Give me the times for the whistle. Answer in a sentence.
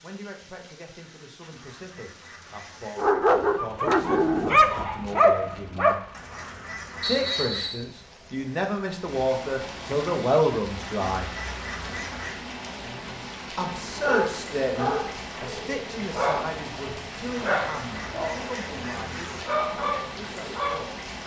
You can hear the whistle from 7.0 to 7.8 s.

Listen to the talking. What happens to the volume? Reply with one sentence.
The loudness of the talking goes up, then down.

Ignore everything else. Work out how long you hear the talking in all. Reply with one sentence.
The talking can be heard for 18 seconds in total.